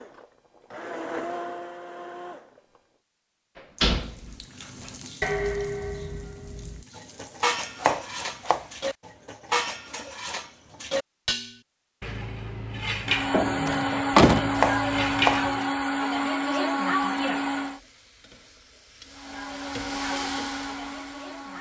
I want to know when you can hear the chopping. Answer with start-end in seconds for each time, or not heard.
7.8-8.8, 14.6-15.4.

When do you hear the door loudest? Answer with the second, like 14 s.
14 s.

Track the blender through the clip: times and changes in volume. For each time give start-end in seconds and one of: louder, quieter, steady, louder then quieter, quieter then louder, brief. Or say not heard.
0.0-2.8 brief
13.1-17.8 steady
19.1-21.5 brief.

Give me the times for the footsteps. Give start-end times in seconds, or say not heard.
not heard.